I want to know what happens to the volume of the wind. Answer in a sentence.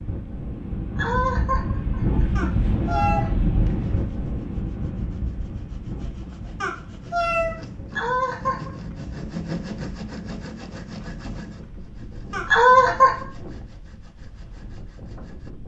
The volume of the wind goes down.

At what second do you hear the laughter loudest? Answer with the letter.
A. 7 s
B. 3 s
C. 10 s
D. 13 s
D.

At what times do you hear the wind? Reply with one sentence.
You can hear the wind from 0.0 to 15.6 s.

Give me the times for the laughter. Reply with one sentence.
You can hear the laughter from 0.9 to 3.3 s, from 7.9 to 8.7 s and from 12.4 to 13.2 s.